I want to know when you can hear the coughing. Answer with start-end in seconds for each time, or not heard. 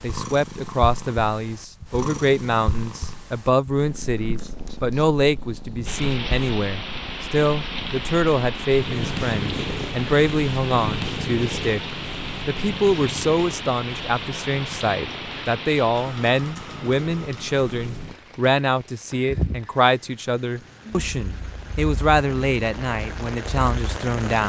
not heard.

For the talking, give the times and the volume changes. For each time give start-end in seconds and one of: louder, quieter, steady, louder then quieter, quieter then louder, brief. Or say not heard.
0.0-11.8 steady
12.4-24.4 steady.